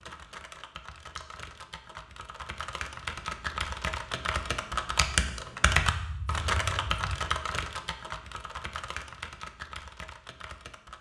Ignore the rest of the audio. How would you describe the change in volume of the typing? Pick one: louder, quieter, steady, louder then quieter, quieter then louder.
louder then quieter.